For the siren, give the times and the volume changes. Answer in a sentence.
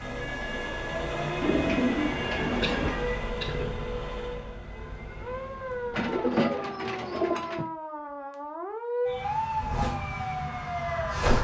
You can hear the siren from 0.0 to 11.3 s, getting louder.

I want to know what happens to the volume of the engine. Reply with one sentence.
The volume of the engine goes down.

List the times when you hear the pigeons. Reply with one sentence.
The pigeons can be heard from 1.4 to 3.0 s and from 5.9 to 7.7 s.